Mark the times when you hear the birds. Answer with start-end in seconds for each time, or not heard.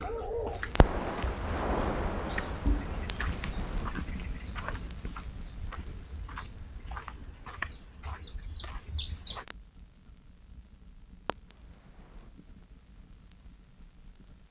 0.0-9.4.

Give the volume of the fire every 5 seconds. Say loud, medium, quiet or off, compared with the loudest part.
loud, quiet, quiet.